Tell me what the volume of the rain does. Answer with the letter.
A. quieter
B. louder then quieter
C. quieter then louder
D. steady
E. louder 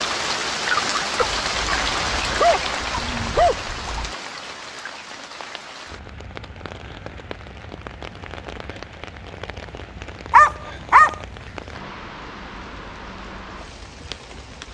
A.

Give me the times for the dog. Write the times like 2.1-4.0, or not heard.
1.2-4.1, 10.3-11.2.